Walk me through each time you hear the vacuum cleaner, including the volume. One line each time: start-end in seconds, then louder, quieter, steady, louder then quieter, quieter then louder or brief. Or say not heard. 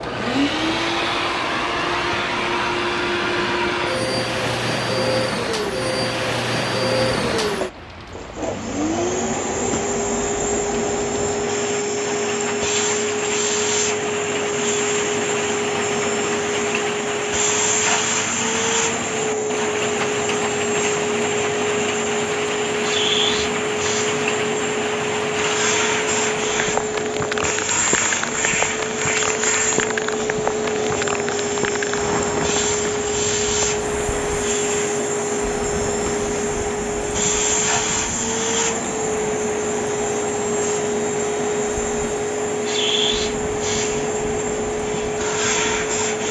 0.0-46.2 steady.